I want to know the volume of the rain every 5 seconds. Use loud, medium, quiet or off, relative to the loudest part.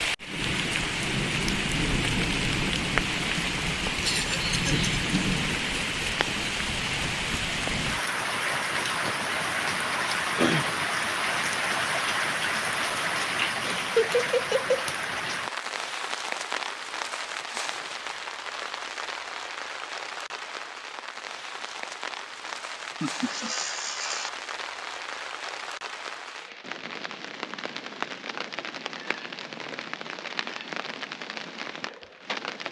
loud, loud, loud, medium, medium, medium, medium.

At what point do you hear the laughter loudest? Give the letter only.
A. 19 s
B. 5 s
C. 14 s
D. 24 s
C.